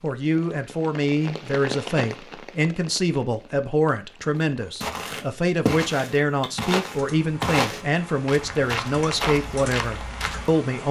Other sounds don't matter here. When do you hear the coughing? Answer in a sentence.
The coughing can't be heard in this clip.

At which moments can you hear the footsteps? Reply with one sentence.
The footsteps can be heard from 4.8 to 10.6 s.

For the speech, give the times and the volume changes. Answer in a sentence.
The speech can be heard from 0.0 to 10.8 s, at a steady volume.